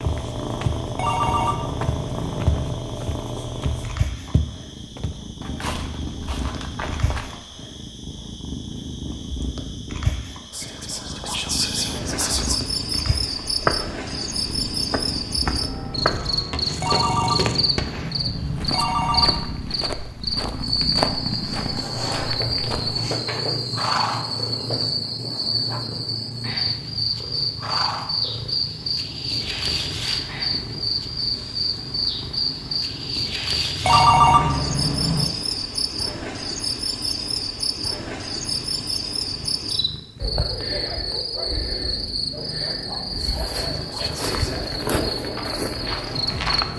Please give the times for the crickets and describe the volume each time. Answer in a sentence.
You can hear the crickets from 0.0 to 46.7 s, getting louder.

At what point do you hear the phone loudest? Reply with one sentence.
The loudest moment of the phone is at 34 seconds.